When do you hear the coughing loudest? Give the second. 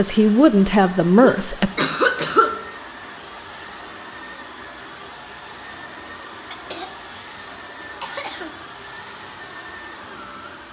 2 s.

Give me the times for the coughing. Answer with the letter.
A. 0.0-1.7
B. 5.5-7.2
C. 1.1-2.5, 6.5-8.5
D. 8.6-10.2
C.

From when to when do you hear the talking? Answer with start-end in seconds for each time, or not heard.
0.0-1.7.